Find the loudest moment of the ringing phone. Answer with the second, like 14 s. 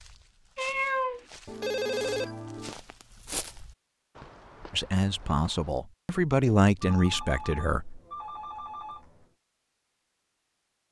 2 s.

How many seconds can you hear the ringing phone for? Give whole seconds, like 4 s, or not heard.
4 s.